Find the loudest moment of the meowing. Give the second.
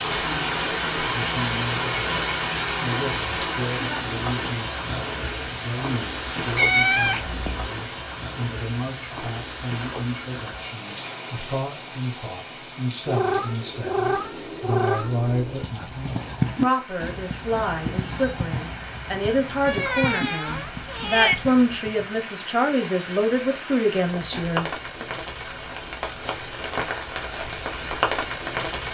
7 s.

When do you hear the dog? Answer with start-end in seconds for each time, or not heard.
not heard.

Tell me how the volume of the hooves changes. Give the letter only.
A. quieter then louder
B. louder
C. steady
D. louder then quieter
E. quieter
E.